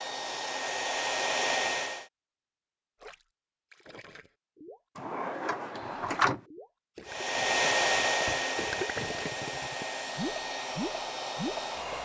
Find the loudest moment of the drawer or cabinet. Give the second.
6 s.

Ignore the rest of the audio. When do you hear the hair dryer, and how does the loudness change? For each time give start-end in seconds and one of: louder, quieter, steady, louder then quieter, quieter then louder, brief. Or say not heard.
0.0-2.0 brief
7.0-11.9 quieter.